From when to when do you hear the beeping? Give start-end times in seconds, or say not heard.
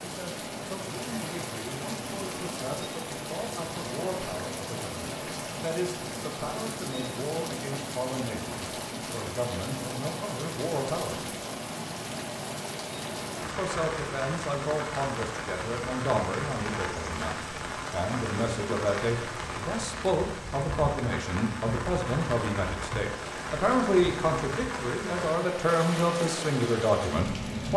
not heard.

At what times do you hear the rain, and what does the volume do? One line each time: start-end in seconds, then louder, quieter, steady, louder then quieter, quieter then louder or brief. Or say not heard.
0.0-27.7 steady.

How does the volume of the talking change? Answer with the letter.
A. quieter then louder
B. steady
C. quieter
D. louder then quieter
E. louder
E.